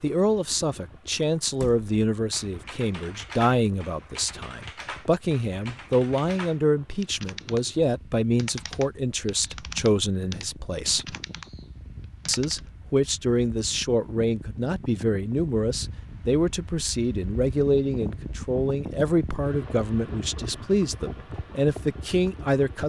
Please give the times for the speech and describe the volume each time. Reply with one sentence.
The speech can be heard from 0.0 to 11.2 s, at a steady volume; and from 12.2 to 22.8 s, at a steady volume.